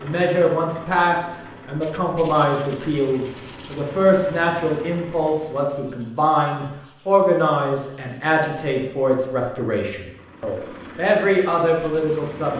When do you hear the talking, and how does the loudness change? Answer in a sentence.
You can hear the talking from 0.0 to 12.5 s, at a steady volume.